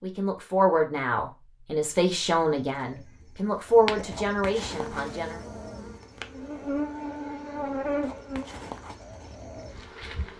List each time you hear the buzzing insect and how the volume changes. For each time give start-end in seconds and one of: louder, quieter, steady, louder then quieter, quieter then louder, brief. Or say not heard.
4.7-10.3 louder then quieter.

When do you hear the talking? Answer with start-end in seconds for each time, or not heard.
0.0-5.5.